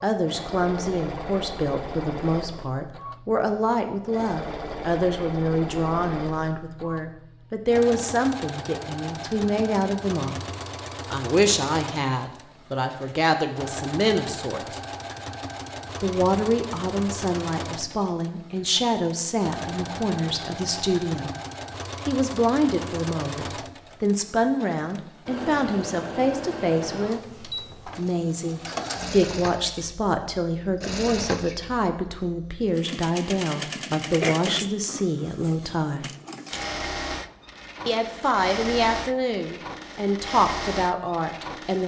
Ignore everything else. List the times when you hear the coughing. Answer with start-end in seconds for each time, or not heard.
34.2-35.5.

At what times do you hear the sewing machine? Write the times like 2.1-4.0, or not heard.
0.1-41.8.